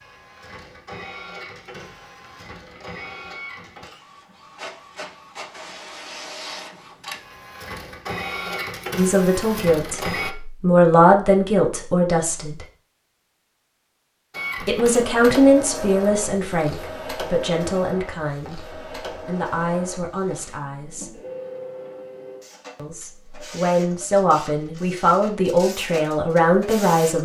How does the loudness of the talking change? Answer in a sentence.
The volume of the talking goes down, then up.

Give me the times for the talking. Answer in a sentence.
You can hear the talking from 8.9 to 12.7 s, from 14.7 to 21.1 s and from 22.8 to 27.1 s.